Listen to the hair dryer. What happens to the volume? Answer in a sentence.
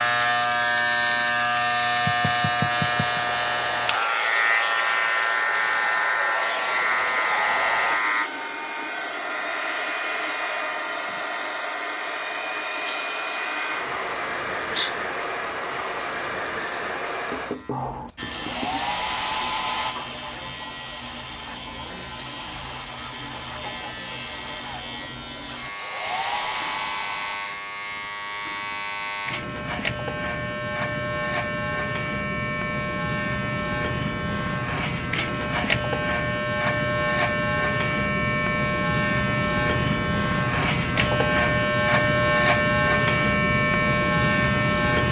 The volume of the hair dryer stays about the same.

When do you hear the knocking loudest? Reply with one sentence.
The volume of the knocking peaks at 3 seconds.